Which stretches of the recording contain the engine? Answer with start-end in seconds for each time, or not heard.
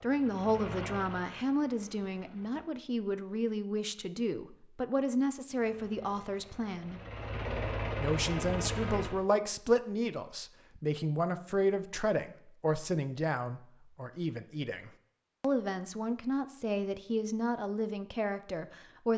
0.0-2.7, 5.5-9.2.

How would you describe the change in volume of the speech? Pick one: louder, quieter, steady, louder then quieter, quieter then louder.
steady.